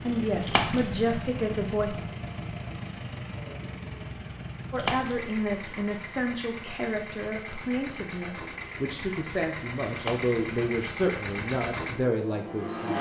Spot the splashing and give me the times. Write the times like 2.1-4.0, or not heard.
0.4-0.9, 4.8-5.2, 9.9-10.4.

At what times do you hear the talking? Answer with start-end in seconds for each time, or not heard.
0.0-2.0, 4.7-12.9.